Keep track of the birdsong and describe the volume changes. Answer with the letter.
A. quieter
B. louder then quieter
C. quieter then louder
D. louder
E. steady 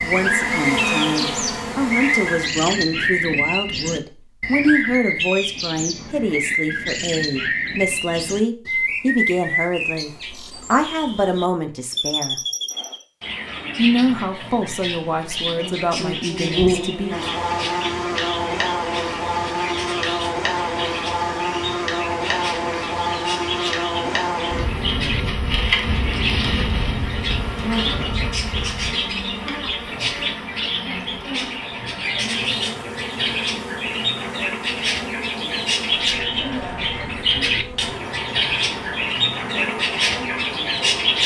C.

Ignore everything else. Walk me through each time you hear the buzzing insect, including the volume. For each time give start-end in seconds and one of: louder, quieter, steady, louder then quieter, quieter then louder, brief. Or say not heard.
0.0-2.5 brief
15.6-41.2 quieter.